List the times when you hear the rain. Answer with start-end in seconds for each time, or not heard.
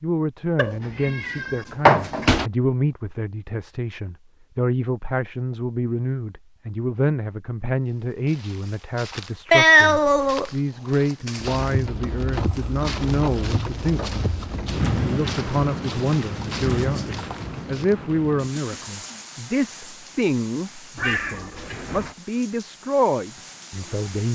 11.3-24.2.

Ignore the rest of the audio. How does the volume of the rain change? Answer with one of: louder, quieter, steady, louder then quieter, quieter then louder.
quieter.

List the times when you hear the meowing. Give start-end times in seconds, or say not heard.
0.6-2.5, 9.5-10.5, 20.9-22.1.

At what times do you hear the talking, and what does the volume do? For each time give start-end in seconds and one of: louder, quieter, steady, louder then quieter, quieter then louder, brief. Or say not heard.
0.0-24.2 steady.